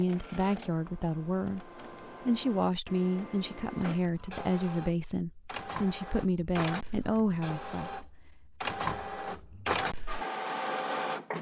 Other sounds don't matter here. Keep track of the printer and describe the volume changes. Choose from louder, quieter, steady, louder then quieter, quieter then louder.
louder.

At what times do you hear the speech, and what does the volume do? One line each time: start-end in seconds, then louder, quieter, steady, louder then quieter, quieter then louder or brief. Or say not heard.
0.0-8.2 steady.